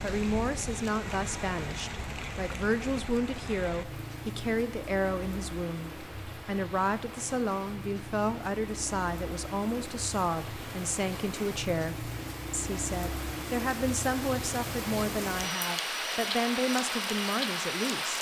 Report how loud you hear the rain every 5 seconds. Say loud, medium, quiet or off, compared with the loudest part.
medium, medium, medium, loud.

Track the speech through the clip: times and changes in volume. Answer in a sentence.
You can hear the speech from 0.0 to 18.1 s, at a steady volume.